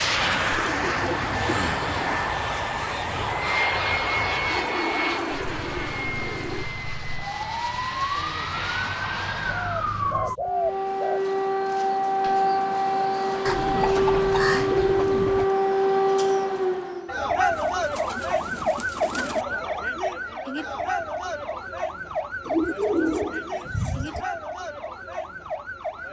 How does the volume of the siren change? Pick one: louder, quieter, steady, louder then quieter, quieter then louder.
louder then quieter.